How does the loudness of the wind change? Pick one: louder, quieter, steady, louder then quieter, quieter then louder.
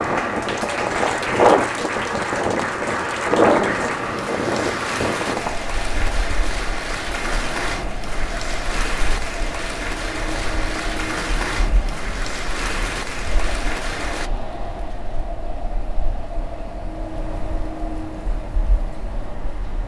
quieter.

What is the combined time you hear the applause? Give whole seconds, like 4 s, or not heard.
14 s.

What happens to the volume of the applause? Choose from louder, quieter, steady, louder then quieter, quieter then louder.
steady.